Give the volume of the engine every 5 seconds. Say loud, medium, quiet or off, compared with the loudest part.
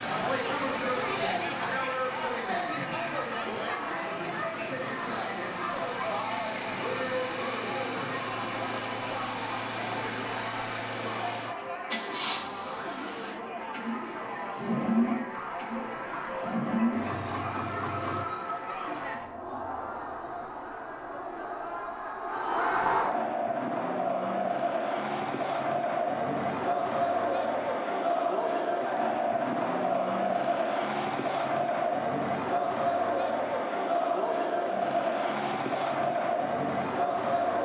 medium, medium, loud, loud, off, off, off, off.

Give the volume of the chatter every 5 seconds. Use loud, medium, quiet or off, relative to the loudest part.
loud, medium, medium, medium, loud, loud, loud, loud.